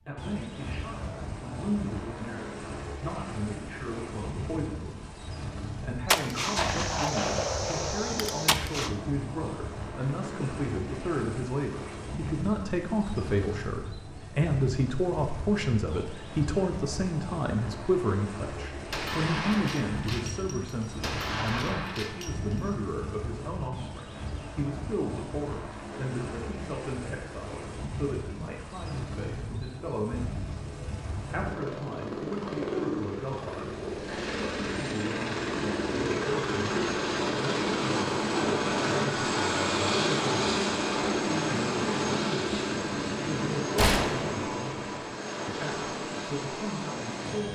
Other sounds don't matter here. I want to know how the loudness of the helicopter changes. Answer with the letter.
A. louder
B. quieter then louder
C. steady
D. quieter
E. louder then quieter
A.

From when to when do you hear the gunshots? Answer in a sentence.
The gunshots can be heard from 6.0 to 8.9 s, from 18.9 to 22.8 s and from 43.8 to 44.4 s.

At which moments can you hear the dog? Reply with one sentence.
The dog can't be heard in this clip.